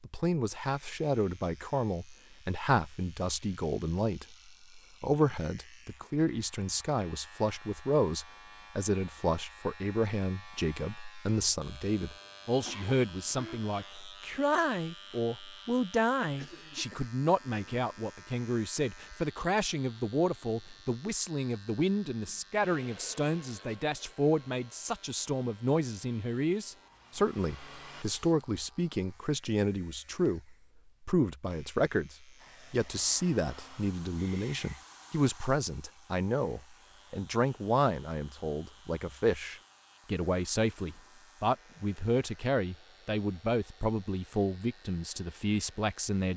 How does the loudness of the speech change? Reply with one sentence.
The loudness of the speech stays about the same.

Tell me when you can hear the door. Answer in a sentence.
The door can't be heard in this clip.